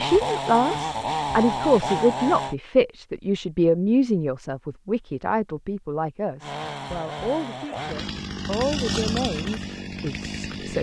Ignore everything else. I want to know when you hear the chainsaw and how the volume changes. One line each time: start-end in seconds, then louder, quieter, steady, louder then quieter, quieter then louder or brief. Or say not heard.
0.0-2.5 brief
6.4-10.7 louder then quieter.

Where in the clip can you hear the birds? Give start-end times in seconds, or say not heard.
not heard.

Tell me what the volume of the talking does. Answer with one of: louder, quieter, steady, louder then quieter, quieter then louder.
quieter.